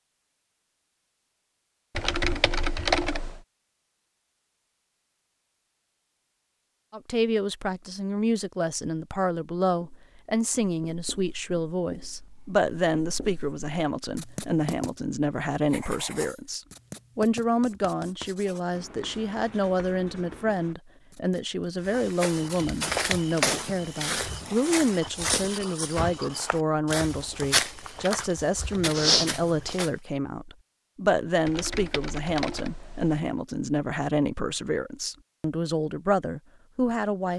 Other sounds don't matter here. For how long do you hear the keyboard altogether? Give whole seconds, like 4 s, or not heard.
3 s.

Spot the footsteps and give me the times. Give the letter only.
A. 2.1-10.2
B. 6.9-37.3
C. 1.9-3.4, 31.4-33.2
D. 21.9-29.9
D.